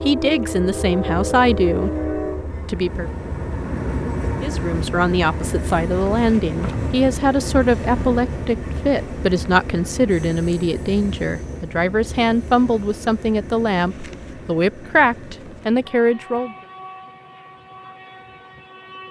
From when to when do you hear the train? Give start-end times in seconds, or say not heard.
0.0-19.0.